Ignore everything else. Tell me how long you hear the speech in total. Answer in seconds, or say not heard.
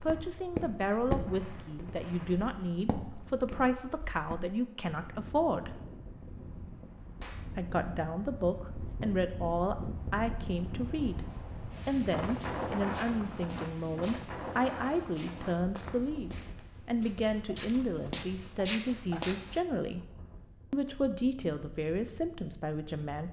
21 s.